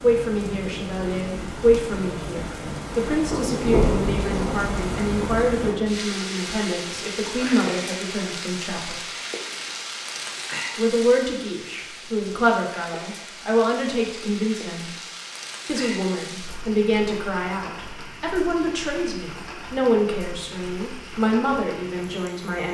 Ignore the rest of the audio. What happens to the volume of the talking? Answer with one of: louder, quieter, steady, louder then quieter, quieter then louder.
steady.